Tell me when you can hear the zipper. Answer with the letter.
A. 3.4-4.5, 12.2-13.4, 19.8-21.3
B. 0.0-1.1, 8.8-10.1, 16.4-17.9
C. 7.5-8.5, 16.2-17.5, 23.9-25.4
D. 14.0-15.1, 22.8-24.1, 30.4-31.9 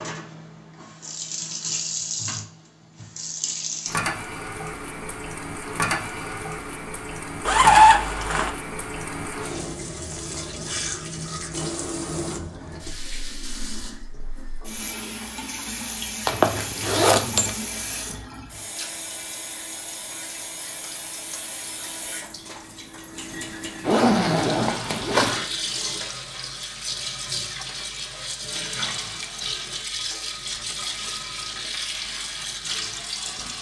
C.